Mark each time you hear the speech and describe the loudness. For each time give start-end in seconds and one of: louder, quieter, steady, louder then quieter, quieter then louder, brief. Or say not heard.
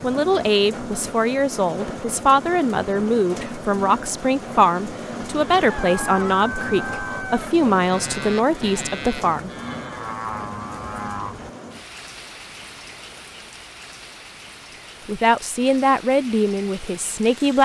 0.0-9.5 steady
15.1-17.6 brief.